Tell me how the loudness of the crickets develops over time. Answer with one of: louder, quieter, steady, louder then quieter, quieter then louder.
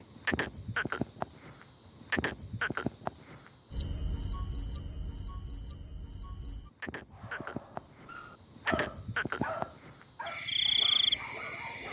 quieter then louder.